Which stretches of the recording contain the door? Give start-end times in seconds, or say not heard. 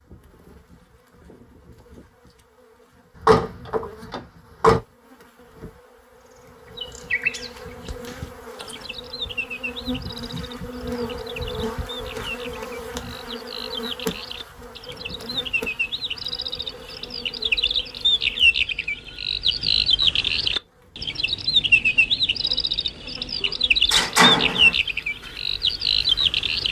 3.1-4.8, 23.4-24.8.